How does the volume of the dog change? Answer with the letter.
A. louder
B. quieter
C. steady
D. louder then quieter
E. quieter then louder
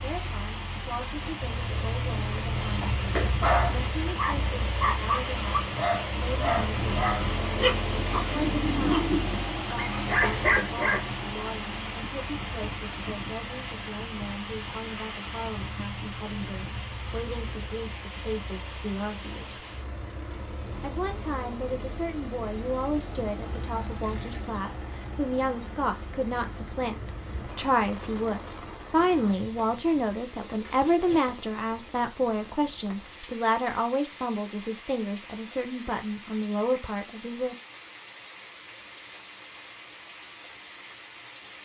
C.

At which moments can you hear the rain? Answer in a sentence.
You can hear the rain from 0.0 to 41.6 s.